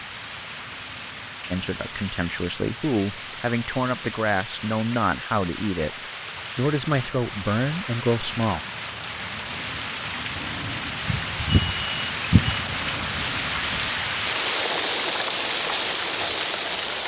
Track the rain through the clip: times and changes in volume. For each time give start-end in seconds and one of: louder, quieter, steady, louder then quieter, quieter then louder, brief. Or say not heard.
0.0-17.0 louder.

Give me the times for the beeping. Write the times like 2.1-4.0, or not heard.
11.1-12.7.